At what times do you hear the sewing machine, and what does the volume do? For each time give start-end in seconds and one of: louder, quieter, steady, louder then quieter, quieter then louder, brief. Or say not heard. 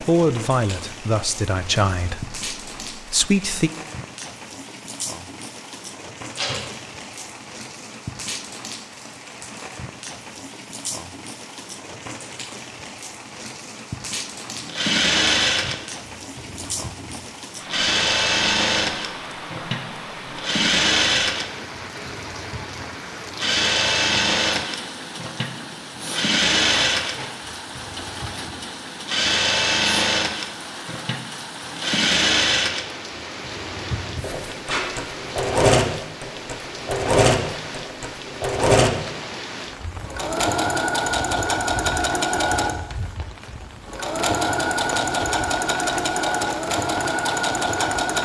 14.6-48.2 steady.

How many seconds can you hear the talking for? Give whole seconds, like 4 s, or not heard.
4 s.